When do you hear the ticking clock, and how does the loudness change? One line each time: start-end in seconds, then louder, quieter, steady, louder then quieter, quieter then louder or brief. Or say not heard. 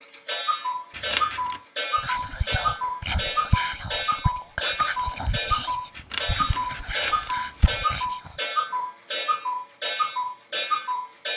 0.0-11.3 steady.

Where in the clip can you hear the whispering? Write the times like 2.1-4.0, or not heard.
1.9-8.3.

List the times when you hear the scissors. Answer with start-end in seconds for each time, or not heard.
0.9-1.6, 6.0-7.8.